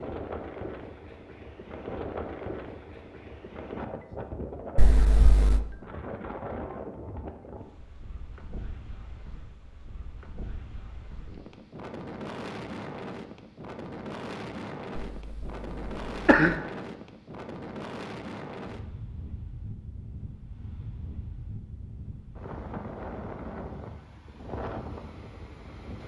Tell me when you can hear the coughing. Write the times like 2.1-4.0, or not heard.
4.8-5.6, 14.9-16.6.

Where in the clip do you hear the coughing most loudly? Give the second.
16 s.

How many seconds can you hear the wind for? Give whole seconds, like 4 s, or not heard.
26 s.